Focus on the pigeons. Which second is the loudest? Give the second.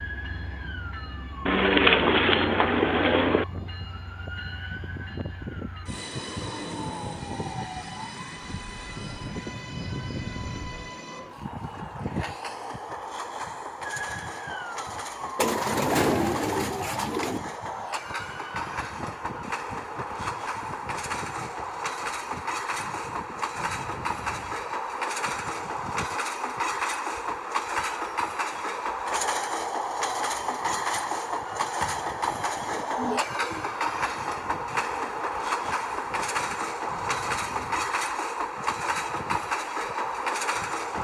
2 s.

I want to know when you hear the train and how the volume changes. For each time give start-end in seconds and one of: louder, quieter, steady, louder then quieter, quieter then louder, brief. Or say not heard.
0.0-40.9 louder.